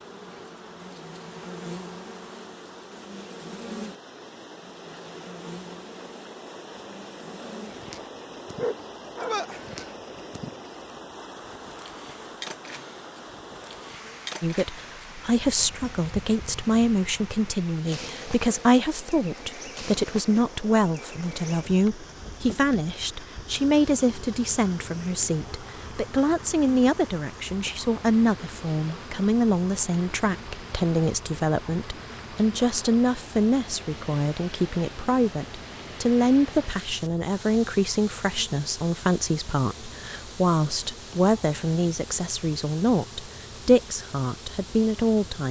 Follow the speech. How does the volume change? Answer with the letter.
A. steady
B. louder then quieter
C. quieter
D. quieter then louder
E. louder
A.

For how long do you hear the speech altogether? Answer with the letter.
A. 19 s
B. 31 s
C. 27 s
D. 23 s
B.